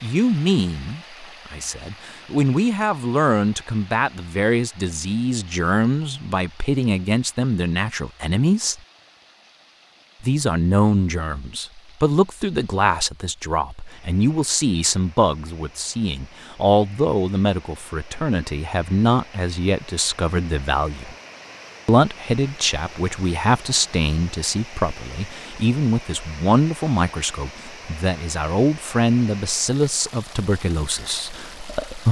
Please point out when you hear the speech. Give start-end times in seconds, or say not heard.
0.0-8.8, 10.2-21.1, 21.9-32.0.